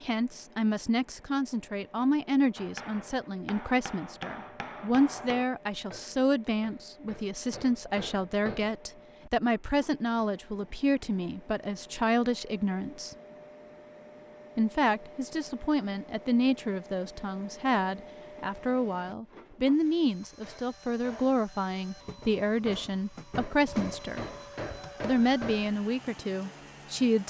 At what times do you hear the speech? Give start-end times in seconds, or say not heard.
0.0-13.2, 14.6-24.2, 25.0-27.2.